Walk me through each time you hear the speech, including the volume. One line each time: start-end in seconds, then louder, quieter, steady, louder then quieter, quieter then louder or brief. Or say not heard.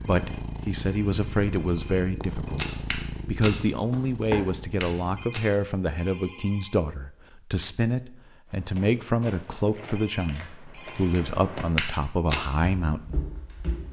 0.1-13.2 steady.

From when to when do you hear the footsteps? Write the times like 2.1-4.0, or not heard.
2.1-5.5, 8.5-13.8.